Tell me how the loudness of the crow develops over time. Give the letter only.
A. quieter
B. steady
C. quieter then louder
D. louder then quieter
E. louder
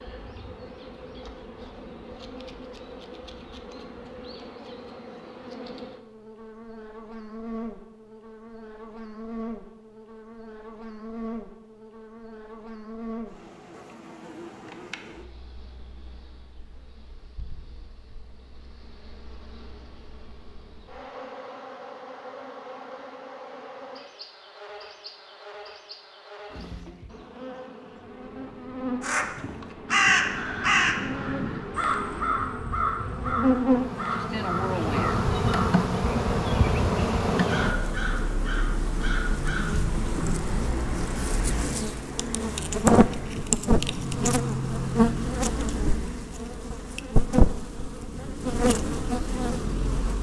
A.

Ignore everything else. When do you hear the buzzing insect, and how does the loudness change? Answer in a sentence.
The buzzing insect can be heard from 0.0 to 50.1 s, getting louder.